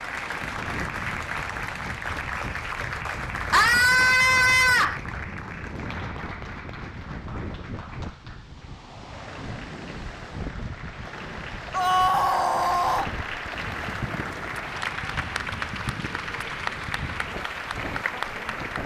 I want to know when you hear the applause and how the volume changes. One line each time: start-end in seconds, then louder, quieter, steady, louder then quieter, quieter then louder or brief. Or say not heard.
0.0-18.8 quieter then louder.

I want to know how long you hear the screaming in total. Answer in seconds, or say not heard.
3 s.